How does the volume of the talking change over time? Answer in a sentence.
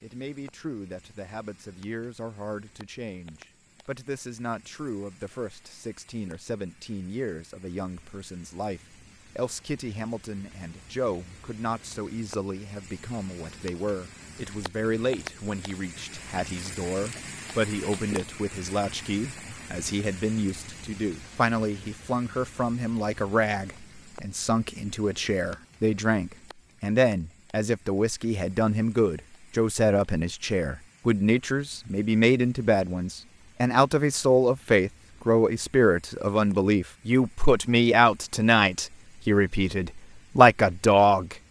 The volume of the talking goes up.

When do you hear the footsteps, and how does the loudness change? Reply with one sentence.
The footsteps can't be heard in this clip.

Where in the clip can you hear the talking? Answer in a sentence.
You can hear the talking from 0.0 to 41.4 s.